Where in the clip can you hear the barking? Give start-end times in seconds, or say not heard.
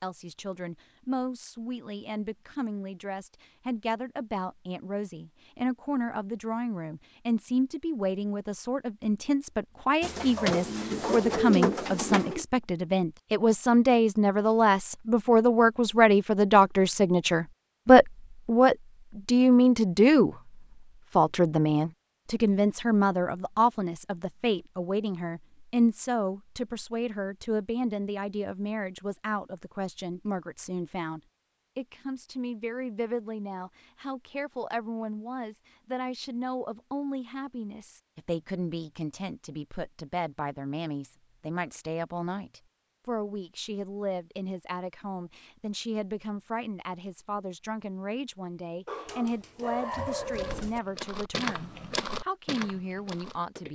10.3-11.3, 48.9-50.7.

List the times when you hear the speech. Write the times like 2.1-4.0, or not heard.
0.0-20.4, 21.1-53.7.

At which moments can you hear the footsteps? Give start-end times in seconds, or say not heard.
49.9-53.7.